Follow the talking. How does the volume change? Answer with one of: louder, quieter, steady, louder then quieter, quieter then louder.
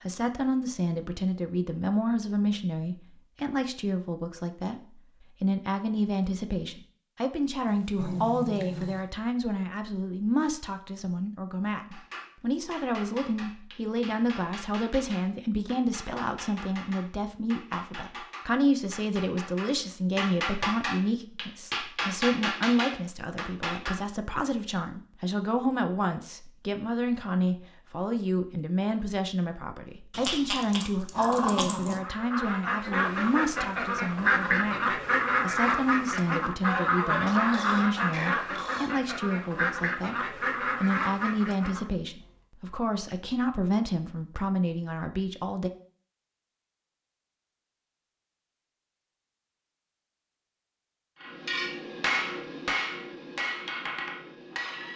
steady.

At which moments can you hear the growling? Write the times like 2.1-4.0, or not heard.
7.7-9.0, 30.1-32.0, 37.2-39.0.